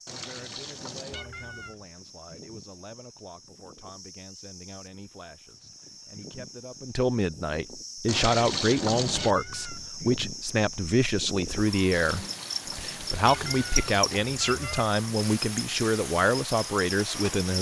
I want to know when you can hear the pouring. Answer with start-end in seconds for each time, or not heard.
0.1-1.2, 8.1-9.3, 11.9-13.9.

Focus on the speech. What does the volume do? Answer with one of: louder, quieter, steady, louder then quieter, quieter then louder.
louder.